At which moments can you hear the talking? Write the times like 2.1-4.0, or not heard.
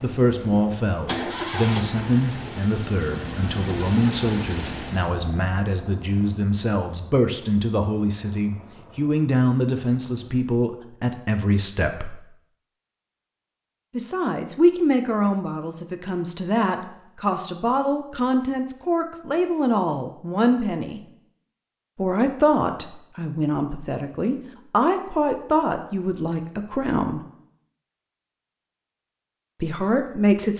0.0-12.2, 13.9-21.0, 21.9-27.2, 29.6-30.5.